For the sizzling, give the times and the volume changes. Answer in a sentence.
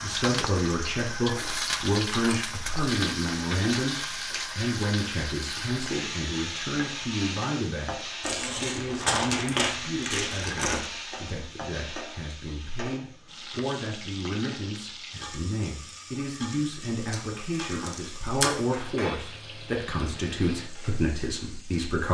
The sizzling can be heard from 0.0 to 22.0 s, getting quieter.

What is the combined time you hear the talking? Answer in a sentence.
The talking can be heard for 22 seconds in total.